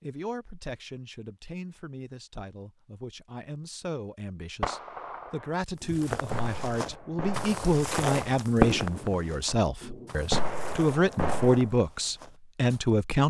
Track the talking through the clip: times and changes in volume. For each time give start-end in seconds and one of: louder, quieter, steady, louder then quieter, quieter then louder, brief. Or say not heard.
0.0-13.2 louder.